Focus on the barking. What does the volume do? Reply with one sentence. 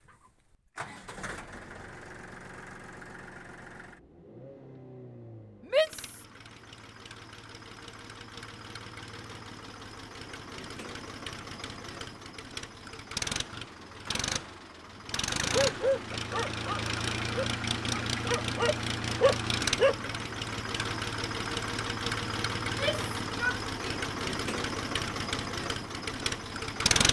The volume of the barking goes down, then up.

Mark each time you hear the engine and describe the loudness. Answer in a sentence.
The engine can be heard from 0.0 to 27.0 s, getting louder.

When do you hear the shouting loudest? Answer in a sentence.
The volume of the shouting peaks at 6 seconds.